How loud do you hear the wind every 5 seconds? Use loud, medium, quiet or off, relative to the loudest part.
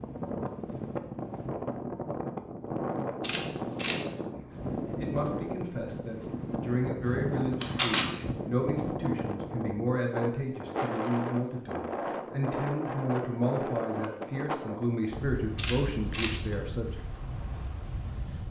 loud, loud, loud, medium.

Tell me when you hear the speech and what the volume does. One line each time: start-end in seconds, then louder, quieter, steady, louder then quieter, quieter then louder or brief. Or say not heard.
4.3-17.0 steady.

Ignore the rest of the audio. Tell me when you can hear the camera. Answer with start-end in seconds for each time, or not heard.
3.2-4.2, 7.6-8.1, 15.6-16.6.